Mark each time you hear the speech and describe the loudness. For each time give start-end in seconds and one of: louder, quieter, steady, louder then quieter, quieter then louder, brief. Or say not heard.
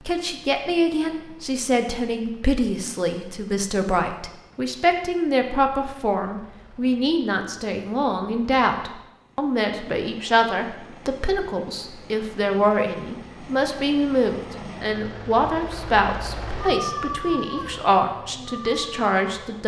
0.1-19.6 steady.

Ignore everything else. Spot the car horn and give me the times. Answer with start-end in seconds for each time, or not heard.
not heard.